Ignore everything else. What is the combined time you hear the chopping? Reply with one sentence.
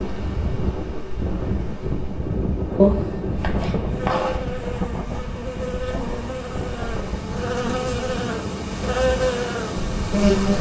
You can hear the chopping for 2 seconds altogether.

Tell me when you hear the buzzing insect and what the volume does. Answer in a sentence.
The buzzing insect can be heard from 0.0 to 10.5 s, getting louder.